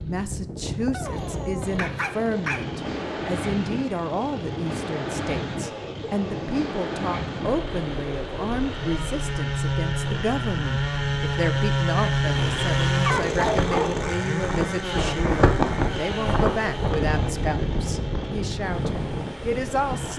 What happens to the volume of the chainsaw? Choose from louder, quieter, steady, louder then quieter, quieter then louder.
louder then quieter.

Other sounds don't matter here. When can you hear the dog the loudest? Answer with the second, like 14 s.
13 s.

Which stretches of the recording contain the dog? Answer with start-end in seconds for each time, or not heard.
0.9-2.6, 12.3-14.1.